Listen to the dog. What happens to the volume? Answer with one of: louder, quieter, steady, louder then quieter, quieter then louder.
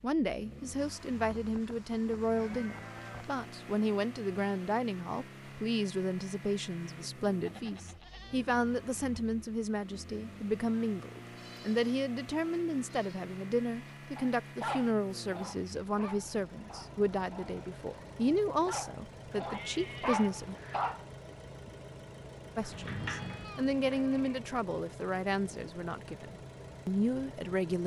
quieter then louder.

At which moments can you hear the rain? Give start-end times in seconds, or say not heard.
not heard.